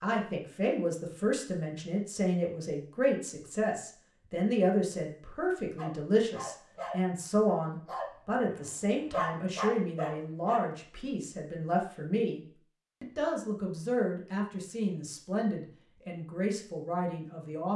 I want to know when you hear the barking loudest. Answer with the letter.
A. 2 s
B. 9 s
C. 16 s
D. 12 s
B.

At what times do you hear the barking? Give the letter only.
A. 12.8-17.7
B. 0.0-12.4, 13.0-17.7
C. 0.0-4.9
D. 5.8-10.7
D.